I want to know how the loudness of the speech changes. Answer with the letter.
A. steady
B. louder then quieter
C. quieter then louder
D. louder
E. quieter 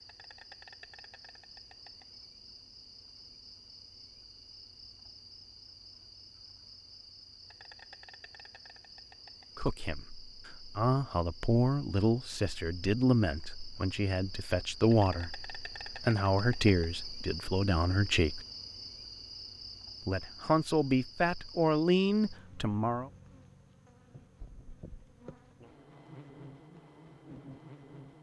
A.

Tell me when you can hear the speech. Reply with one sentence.
The speech can be heard from 9.6 to 18.4 s and from 20.1 to 23.1 s.